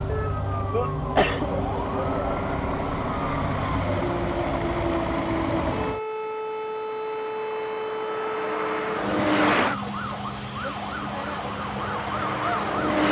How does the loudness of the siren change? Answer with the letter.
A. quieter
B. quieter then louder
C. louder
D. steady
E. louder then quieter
D.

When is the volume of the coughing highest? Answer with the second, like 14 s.
1 s.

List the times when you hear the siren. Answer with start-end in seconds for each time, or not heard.
0.0-13.0.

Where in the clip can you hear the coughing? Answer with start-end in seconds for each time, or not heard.
0.1-1.5.